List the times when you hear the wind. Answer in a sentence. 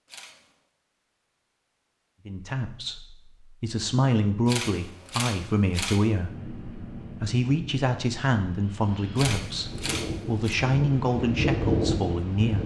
You can hear the wind from 6.1 to 12.6 s.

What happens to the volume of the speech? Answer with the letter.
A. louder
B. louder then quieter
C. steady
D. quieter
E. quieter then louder
C.